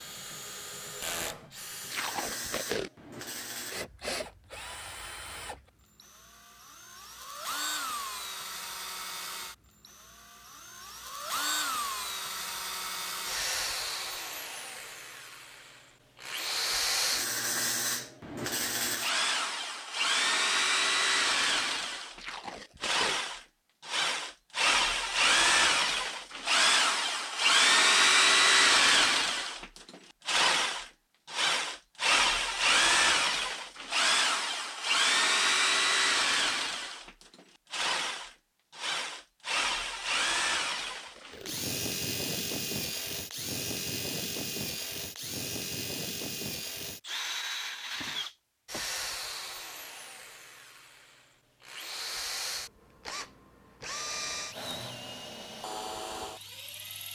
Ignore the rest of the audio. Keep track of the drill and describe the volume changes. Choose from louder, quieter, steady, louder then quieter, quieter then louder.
louder then quieter.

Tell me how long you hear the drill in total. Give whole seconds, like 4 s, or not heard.
57 s.